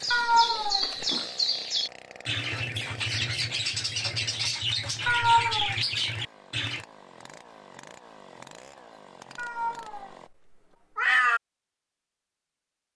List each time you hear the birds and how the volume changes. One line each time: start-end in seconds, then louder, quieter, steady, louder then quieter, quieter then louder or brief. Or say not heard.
0.0-6.8 steady.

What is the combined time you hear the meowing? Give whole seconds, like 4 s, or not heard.
3 s.